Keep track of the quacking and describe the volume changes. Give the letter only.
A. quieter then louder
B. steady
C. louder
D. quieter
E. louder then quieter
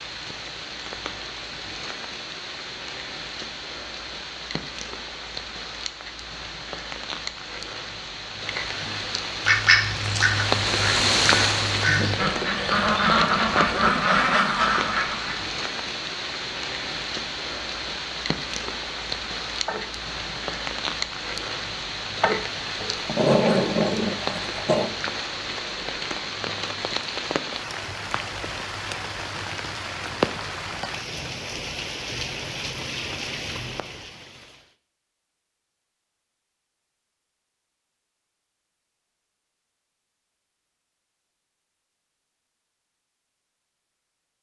A.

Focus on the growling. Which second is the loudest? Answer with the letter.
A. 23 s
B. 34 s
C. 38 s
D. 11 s
A.